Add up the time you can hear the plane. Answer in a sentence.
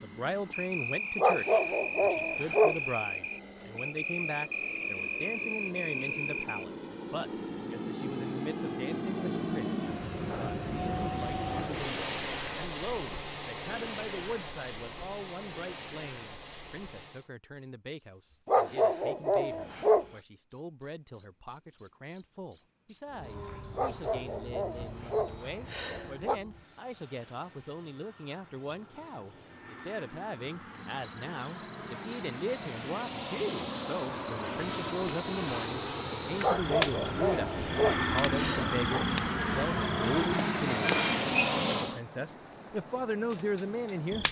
You can hear the plane for 36 seconds altogether.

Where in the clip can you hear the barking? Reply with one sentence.
You can hear the barking from 1.1 to 2.8 s, from 18.4 to 20.1 s, from 23.8 to 26.4 s and from 36.4 to 39.0 s.